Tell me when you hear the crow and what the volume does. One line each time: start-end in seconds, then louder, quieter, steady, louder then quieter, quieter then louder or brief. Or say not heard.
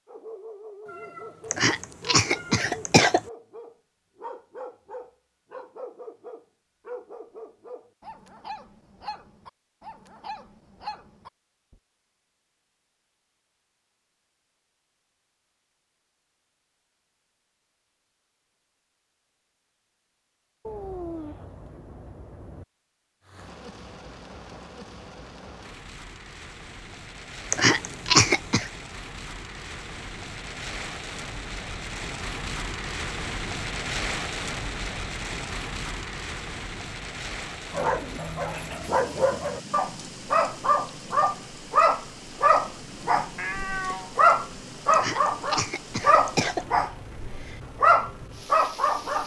not heard.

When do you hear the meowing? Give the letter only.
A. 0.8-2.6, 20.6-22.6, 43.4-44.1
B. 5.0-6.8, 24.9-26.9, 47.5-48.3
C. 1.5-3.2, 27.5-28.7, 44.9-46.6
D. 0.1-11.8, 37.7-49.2
A.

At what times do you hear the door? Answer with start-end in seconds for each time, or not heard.
not heard.